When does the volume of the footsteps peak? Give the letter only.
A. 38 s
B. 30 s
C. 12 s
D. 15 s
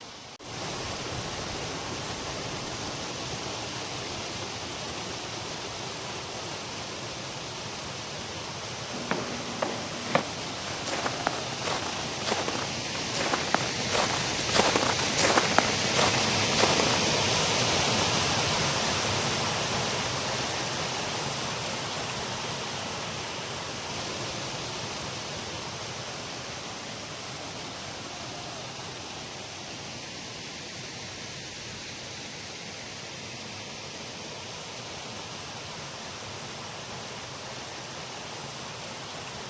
D.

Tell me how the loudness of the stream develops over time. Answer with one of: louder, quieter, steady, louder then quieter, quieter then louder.
louder then quieter.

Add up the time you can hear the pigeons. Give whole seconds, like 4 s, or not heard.
not heard.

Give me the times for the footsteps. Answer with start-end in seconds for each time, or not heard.
8.9-17.0.